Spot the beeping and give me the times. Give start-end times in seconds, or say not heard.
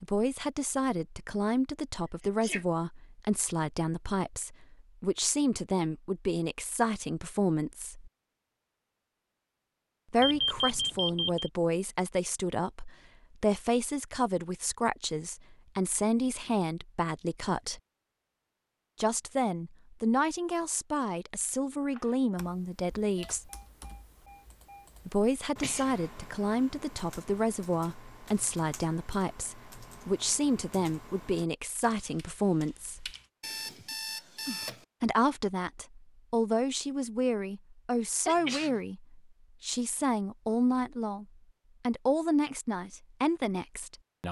10.2-11.5, 23.1-24.9, 33.4-34.8.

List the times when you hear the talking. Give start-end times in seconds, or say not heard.
0.0-8.1, 10.1-17.8, 18.9-23.5, 25.1-33.1, 35.0-44.2.